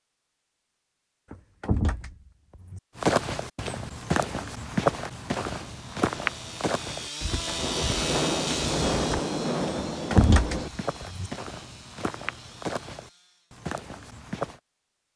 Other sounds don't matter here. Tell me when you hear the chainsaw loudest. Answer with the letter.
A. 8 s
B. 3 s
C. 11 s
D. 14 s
A.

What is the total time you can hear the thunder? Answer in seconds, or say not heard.
3 s.